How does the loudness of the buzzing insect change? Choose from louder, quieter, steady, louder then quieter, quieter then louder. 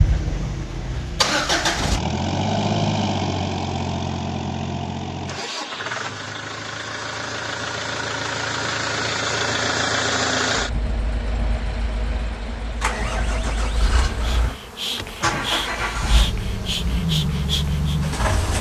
steady.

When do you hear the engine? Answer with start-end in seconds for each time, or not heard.
0.0-18.5.